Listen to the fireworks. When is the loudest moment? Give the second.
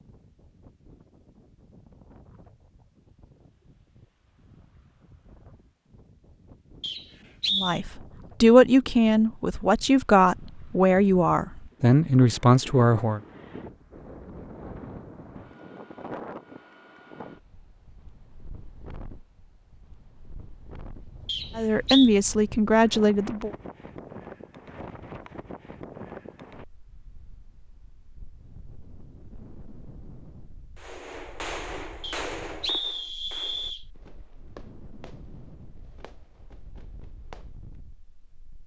32 s.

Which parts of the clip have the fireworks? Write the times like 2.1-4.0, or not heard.
30.8-37.8.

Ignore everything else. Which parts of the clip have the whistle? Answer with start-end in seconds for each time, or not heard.
6.8-7.8, 21.2-22.1, 32.0-33.9.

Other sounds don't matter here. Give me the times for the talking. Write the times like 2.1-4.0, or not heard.
7.5-13.2, 21.6-23.5.